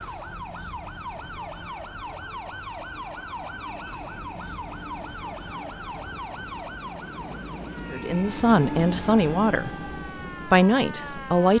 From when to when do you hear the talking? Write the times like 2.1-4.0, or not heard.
7.9-9.7, 10.4-11.5.